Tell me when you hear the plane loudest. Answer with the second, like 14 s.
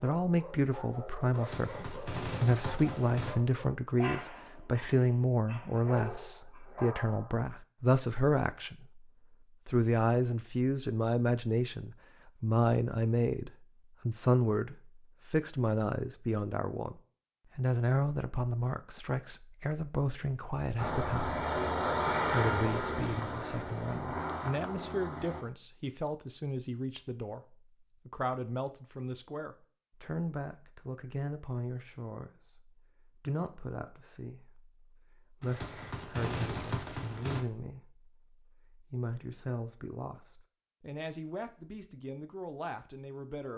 22 s.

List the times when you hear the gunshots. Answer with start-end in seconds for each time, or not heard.
1.3-3.4, 35.4-37.4.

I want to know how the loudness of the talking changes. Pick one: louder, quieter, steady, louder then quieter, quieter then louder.
quieter.